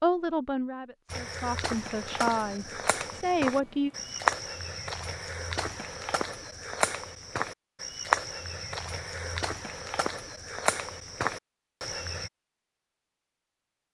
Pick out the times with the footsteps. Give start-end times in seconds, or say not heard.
1.1-12.3.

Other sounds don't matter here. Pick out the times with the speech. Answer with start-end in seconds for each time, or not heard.
0.0-3.9.